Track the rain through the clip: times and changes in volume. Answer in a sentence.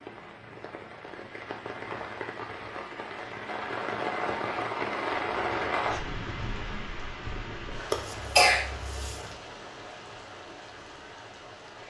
You can hear the rain from 0.0 to 11.8 s, getting louder then quieter.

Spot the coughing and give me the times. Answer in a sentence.
The coughing can be heard from 7.9 to 9.3 s.